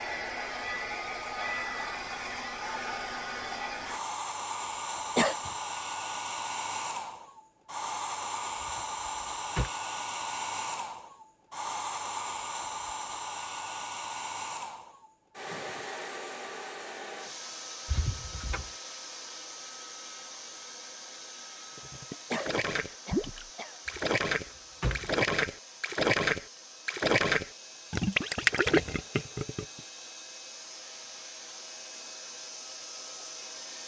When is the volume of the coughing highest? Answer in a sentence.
The loudest moment of the coughing is at 5 seconds.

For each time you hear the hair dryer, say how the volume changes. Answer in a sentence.
The hair dryer can be heard from 0.0 to 33.8 s, getting quieter.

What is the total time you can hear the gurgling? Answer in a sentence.
You can hear the gurgling for 8 seconds altogether.